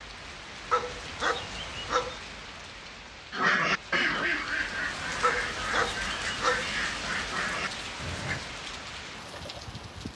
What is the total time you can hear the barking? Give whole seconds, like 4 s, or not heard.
3 s.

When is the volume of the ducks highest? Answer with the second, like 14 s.
4 s.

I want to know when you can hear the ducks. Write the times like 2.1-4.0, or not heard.
3.3-8.4.